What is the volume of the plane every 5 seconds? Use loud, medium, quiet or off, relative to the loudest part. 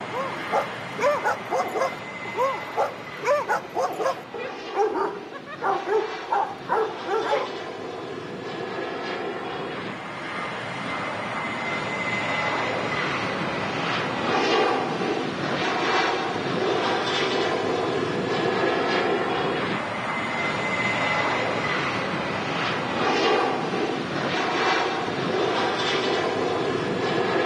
medium, medium, loud, loud, loud, loud.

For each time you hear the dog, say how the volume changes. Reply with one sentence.
The dog can be heard from 0.1 to 7.5 s, at a steady volume.